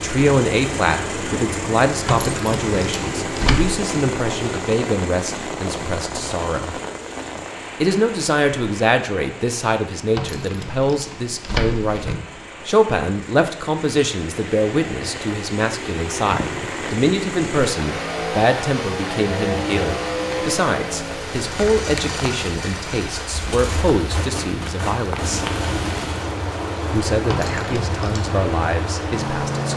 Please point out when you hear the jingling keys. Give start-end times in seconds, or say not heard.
2.0-3.9, 10.1-12.2, 27.2-28.2.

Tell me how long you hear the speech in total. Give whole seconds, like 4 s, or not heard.
27 s.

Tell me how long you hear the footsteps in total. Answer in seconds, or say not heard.
not heard.